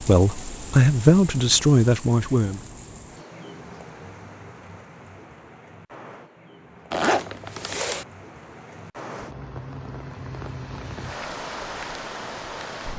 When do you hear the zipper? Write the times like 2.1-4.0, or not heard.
6.9-8.1.